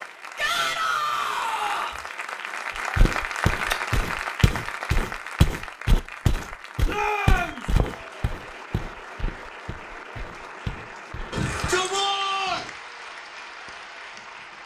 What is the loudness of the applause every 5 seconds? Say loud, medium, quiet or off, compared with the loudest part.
loud, medium, medium.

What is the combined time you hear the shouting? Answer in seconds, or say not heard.
4 s.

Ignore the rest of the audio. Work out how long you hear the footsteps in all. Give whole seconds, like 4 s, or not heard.
9 s.